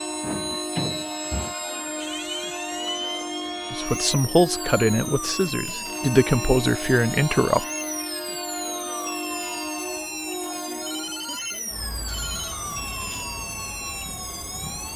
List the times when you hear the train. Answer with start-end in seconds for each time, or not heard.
0.0-14.9.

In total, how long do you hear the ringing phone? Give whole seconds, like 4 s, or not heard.
3 s.